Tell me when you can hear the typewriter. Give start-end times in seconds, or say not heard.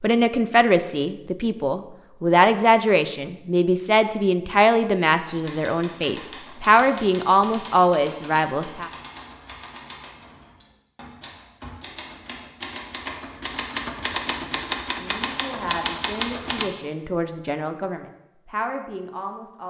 5.2-16.6.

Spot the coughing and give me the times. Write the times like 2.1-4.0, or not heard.
not heard.